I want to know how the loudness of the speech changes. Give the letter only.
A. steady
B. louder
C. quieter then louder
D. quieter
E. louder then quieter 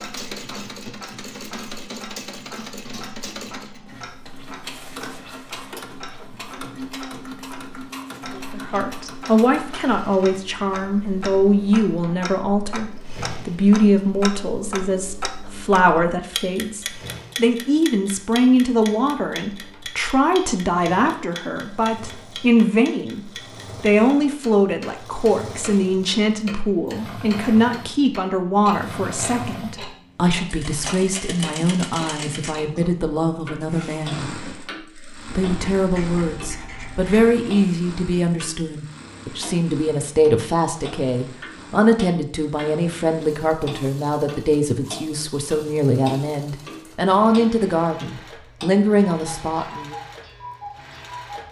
A.